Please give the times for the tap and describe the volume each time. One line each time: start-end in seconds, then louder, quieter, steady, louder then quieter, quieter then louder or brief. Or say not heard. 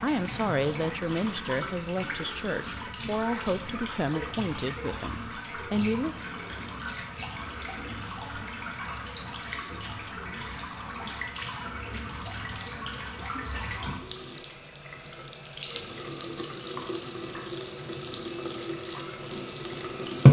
0.0-20.2 steady.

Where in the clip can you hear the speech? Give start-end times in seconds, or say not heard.
0.0-6.2.